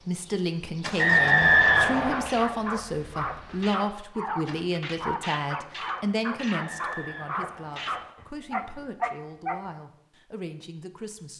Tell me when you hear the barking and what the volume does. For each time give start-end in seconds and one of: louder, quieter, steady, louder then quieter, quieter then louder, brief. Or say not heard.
1.6-9.6 steady.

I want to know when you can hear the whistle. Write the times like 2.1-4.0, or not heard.
0.9-2.3, 6.5-8.2.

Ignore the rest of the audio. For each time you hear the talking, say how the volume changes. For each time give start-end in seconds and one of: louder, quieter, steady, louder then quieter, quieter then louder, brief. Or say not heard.
0.1-11.3 quieter.